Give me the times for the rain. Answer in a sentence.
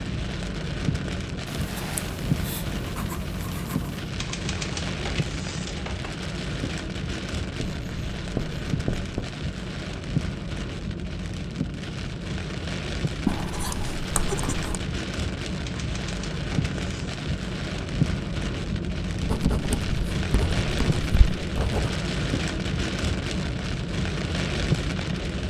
You can hear the rain from 0.0 to 25.4 s.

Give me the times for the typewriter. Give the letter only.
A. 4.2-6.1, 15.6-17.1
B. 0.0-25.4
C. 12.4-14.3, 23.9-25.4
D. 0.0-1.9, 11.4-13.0
A.